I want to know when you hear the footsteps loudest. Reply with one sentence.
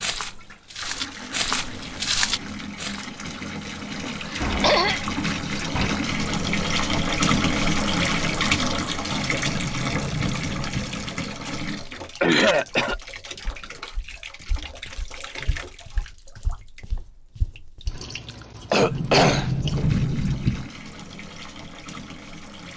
The volume of the footsteps peaks at 2 seconds.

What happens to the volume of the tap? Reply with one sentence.
The loudness of the tap goes up, then down.